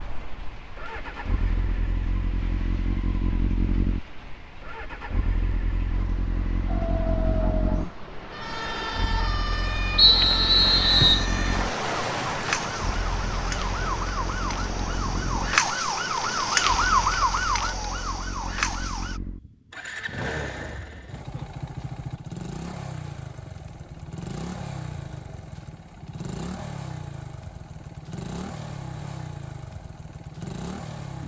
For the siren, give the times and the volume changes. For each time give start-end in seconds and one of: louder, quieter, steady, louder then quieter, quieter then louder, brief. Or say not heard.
6.7-19.2 louder.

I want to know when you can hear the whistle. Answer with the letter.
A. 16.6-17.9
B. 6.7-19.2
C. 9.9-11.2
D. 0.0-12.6
C.